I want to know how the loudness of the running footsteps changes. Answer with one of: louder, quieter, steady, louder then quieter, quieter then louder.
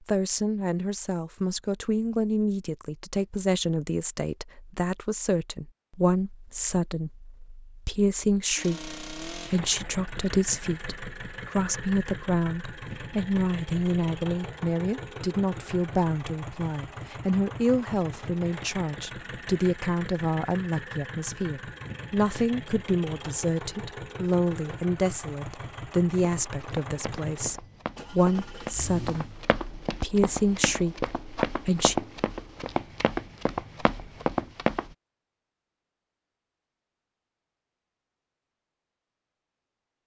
louder.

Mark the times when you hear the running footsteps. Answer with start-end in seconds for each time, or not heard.
26.4-35.0.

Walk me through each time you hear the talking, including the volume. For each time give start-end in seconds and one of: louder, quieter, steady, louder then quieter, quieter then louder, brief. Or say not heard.
0.1-31.9 steady.